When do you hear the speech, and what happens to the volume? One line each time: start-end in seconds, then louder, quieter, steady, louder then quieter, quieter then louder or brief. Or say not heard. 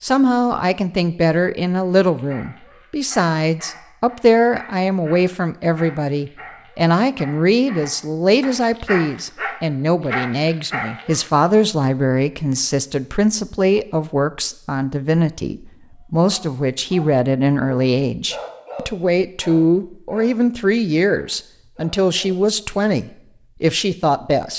0.0-24.5 steady.